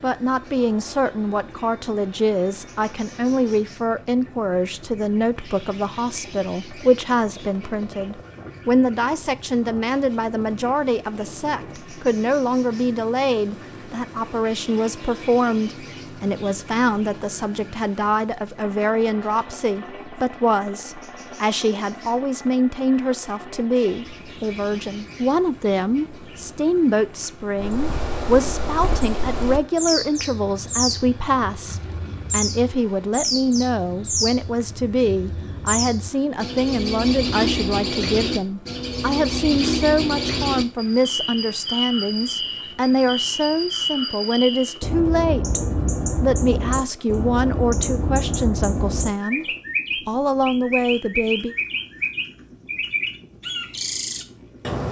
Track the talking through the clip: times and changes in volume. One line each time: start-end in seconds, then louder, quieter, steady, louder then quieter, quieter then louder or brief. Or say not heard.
0.0-49.5 steady
50.0-51.5 brief.